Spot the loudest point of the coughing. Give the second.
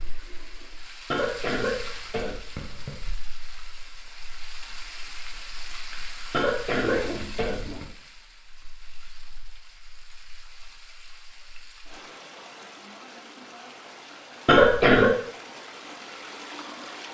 15 s.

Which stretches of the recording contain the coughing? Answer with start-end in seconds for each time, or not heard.
1.1-3.1, 6.3-7.8, 14.4-15.1.